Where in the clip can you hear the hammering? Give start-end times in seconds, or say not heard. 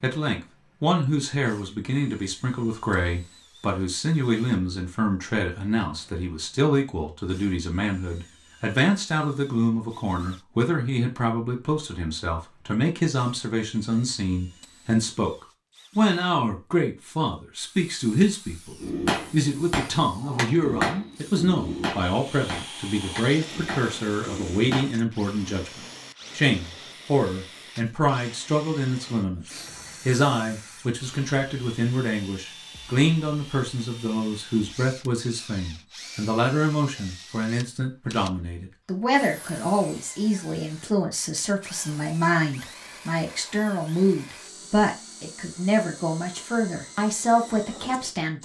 18.8-24.9.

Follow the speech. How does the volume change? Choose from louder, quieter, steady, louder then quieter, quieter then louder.
steady.